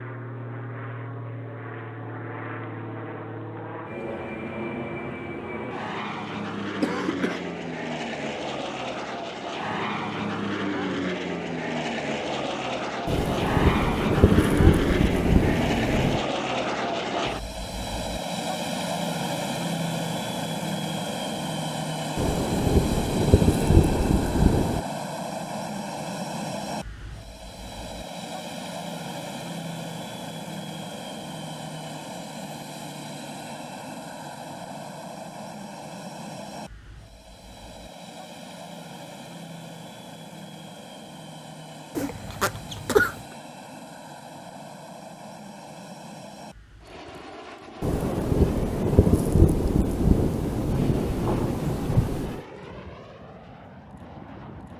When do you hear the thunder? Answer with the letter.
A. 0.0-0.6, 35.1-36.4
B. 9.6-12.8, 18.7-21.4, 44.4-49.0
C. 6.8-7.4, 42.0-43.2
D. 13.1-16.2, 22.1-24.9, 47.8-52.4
D.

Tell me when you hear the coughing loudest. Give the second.
43 s.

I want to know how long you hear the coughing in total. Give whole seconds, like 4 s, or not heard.
2 s.